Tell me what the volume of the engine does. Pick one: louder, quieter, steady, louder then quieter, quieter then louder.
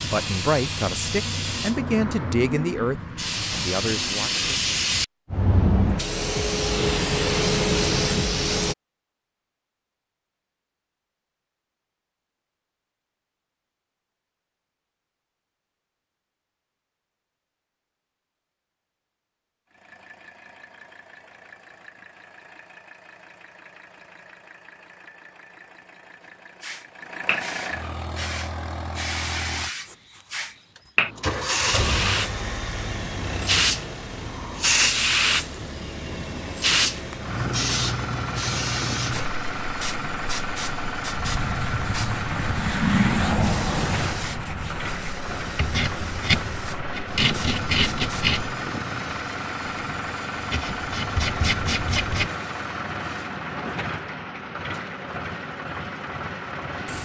louder.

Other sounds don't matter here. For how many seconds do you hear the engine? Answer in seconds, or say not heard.
37 s.